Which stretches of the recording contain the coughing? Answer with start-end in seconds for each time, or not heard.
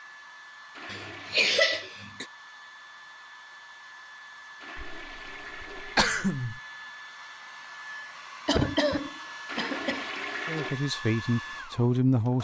0.9-2.2, 4.8-6.6, 8.4-10.0.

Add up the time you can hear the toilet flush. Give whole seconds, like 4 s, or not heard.
4 s.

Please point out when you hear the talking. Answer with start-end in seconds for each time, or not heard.
10.4-12.3.